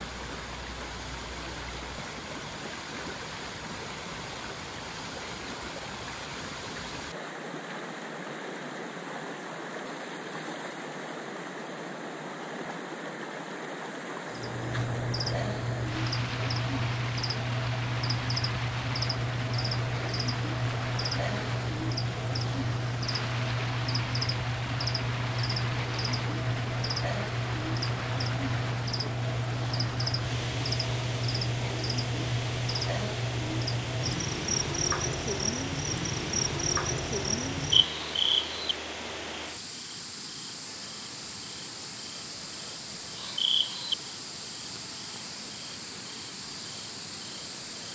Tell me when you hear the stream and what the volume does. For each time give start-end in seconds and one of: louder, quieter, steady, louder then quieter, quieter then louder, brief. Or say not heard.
0.0-47.9 steady.